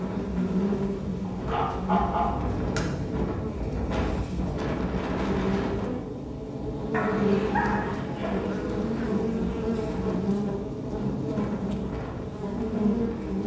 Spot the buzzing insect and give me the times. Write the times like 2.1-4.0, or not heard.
0.0-13.4.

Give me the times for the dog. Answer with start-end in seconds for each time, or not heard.
1.2-2.8, 6.9-8.5.